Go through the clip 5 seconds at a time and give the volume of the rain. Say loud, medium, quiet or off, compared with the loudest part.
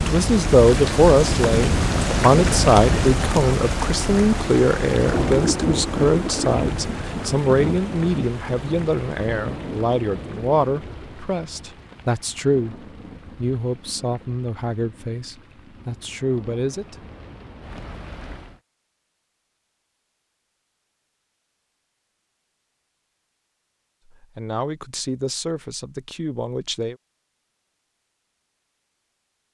loud, loud, quiet, quiet, off, off.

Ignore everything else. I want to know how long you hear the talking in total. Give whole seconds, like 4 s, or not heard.
20 s.